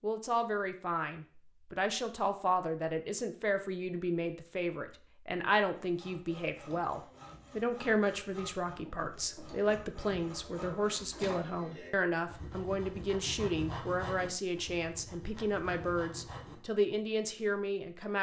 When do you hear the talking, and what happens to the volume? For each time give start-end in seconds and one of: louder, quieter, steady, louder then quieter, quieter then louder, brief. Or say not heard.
0.0-18.1 steady.